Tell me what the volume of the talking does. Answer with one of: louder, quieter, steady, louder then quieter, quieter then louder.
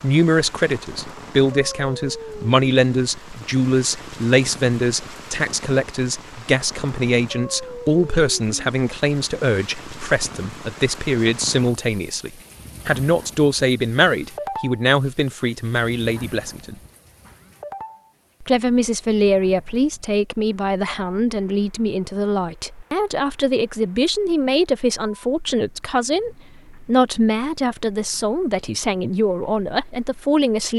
steady.